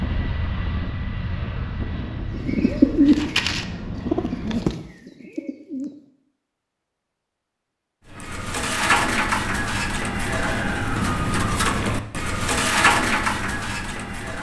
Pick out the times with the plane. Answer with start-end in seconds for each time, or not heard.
0.0-4.7.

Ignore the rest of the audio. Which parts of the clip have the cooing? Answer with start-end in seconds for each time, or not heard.
2.3-6.0, 8.1-14.3.